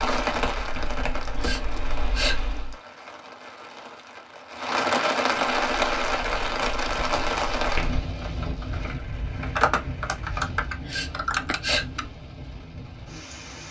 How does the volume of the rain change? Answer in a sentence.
The volume of the rain goes up, then down.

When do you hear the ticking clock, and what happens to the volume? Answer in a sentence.
The ticking clock can't be heard in this clip.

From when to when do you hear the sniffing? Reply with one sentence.
The sniffing can be heard from 1.4 to 2.6 s and from 10.8 to 12.1 s.